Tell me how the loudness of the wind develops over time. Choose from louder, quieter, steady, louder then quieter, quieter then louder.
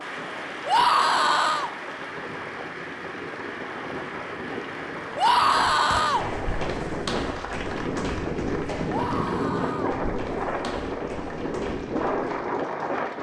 louder.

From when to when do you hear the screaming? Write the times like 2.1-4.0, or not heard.
0.7-1.7, 5.2-6.2, 8.8-10.0.